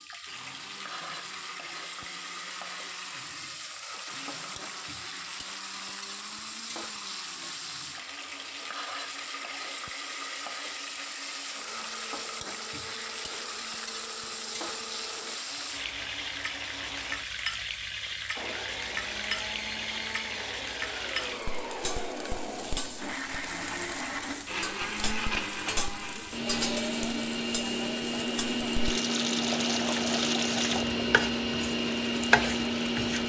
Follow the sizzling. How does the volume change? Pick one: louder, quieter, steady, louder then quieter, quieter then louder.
louder.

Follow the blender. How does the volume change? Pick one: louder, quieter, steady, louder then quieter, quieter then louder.
louder.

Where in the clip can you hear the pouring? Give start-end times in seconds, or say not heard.
29.4-30.9.